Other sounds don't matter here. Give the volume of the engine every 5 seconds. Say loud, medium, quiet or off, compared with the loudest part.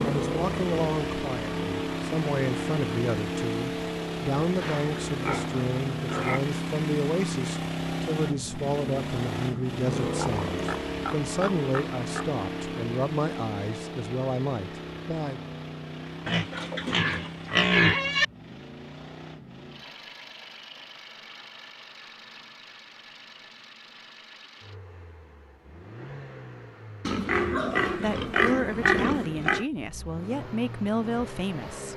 loud, loud, loud, medium, quiet, quiet, medium.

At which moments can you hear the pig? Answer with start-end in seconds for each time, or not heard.
4.5-6.4, 10.2-12.3, 16.2-18.2, 27.1-29.6.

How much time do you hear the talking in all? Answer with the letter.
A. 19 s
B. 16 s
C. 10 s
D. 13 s
A.